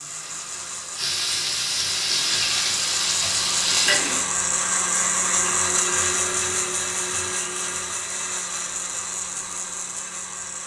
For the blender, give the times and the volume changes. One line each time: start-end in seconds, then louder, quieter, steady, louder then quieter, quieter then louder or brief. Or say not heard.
0.0-10.6 louder then quieter.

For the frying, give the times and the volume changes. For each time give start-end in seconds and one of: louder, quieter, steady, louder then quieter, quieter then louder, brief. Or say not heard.
0.0-4.2 louder.